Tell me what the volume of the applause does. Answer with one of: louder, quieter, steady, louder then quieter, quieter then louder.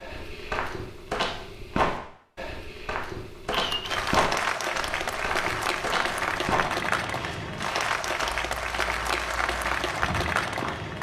steady.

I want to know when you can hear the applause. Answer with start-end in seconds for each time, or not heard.
3.5-10.9.